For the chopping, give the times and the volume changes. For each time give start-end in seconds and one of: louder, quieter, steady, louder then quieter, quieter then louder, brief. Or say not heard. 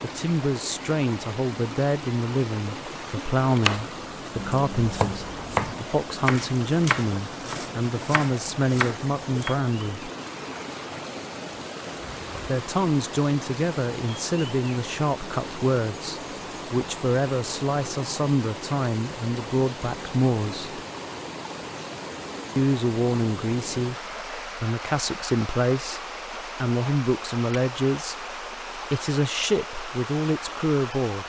3.6-9.6 quieter then louder.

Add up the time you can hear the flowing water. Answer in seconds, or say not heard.
31 s.